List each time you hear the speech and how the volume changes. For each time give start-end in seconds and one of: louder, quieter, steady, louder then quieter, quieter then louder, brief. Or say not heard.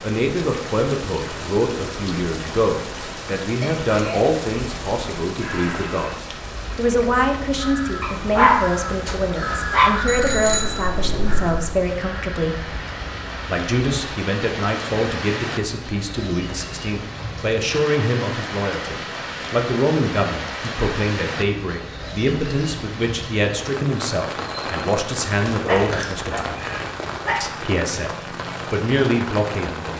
0.0-12.8 steady
13.4-26.6 steady
27.4-29.9 brief.